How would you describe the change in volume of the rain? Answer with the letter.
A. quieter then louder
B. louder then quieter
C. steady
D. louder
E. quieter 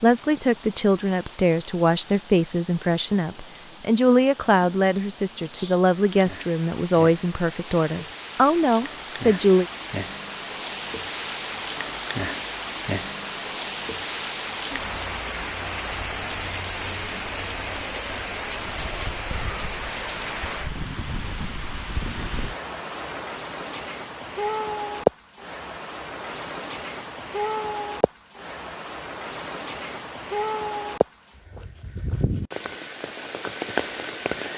D.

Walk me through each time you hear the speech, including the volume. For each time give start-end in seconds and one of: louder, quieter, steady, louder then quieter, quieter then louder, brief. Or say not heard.
0.0-9.7 steady.